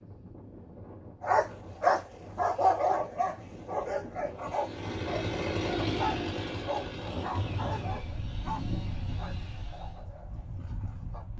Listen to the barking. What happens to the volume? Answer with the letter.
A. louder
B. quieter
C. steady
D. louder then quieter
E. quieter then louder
B.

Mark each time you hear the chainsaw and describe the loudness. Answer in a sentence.
The chainsaw can be heard from 4.3 to 10.1 s, getting quieter.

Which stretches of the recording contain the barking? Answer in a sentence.
You can hear the barking from 1.2 to 11.2 s.